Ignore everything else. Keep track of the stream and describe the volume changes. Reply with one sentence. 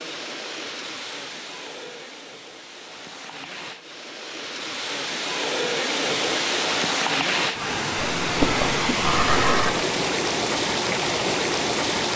The loudness of the stream goes up.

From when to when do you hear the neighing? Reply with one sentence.
You can hear the neighing from 8.2 to 9.7 s.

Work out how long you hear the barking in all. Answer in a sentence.
The barking can't be heard in this clip.